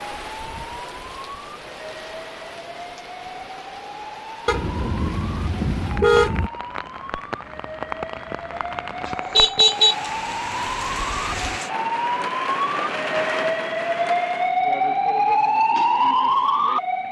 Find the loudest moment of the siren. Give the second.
16 s.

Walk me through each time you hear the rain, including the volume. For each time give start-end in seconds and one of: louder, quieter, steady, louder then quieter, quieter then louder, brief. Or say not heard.
0.0-14.6 louder.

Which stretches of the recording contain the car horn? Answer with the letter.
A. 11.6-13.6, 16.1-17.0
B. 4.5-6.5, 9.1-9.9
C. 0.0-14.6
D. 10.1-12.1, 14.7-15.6
B.